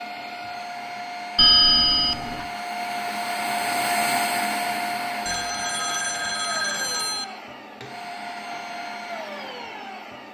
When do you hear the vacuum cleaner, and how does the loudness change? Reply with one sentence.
The vacuum cleaner can be heard from 0.0 to 10.2 s, getting louder then quieter.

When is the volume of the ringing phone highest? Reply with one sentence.
The volume of the ringing phone peaks at 2 seconds.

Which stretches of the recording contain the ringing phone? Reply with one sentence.
The ringing phone can be heard from 1.4 to 2.5 s and from 5.2 to 7.2 s.